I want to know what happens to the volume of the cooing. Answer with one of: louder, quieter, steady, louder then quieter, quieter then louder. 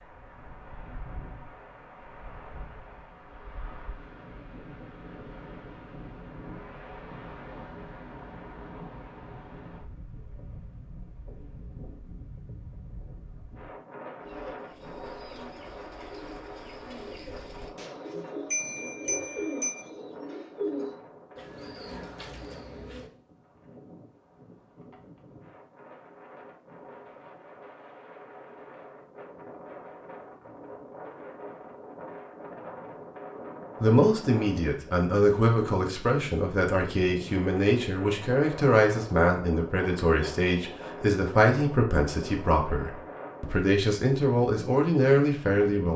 louder then quieter.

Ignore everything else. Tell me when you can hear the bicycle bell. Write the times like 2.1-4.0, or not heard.
18.5-19.9.